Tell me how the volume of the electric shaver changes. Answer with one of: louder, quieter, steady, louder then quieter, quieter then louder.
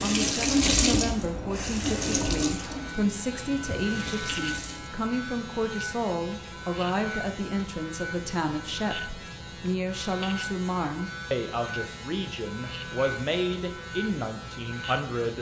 steady.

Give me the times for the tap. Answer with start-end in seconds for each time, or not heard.
0.0-4.9.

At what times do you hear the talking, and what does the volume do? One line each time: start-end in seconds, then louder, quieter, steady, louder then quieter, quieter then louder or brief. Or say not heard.
0.0-15.3 steady.